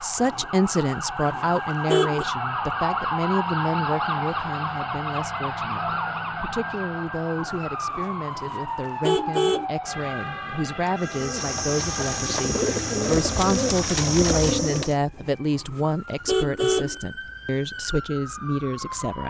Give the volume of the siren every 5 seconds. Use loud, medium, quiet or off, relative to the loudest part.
loud, loud, medium, medium.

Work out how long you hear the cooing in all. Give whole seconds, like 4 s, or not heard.
4 s.